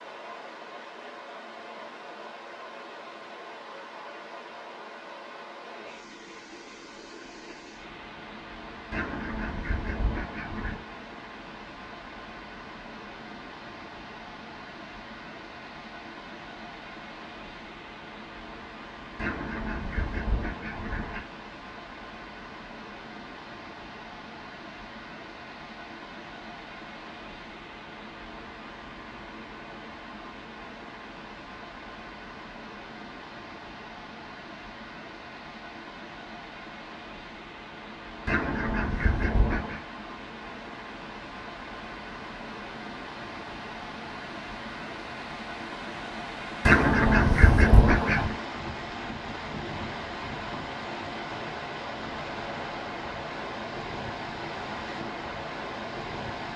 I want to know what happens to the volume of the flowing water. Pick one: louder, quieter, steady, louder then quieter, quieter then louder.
louder.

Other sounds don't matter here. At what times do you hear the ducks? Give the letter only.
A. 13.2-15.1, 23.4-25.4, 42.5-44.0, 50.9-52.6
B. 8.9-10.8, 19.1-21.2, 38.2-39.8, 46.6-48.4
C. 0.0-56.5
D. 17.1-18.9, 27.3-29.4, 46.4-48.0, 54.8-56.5
B.